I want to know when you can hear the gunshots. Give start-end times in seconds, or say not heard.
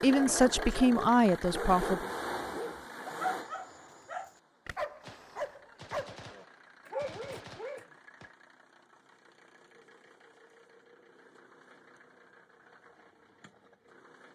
5.0-8.3.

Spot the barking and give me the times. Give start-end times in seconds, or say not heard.
0.0-7.8.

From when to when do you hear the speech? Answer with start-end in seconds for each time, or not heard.
0.0-2.0.